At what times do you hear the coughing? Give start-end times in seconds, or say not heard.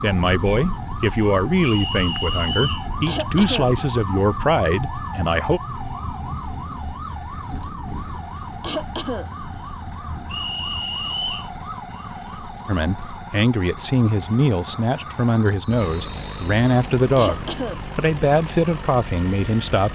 3.0-3.7, 8.6-9.2, 17.1-17.8.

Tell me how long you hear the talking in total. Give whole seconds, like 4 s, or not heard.
13 s.